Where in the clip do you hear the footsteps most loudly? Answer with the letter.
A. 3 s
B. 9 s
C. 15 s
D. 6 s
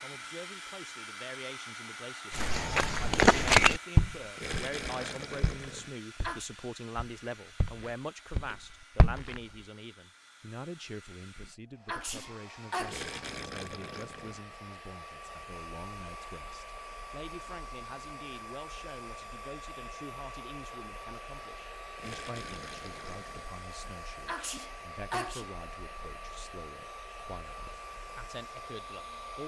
A.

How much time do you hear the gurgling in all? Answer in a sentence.
You can hear the gurgling for 5 seconds altogether.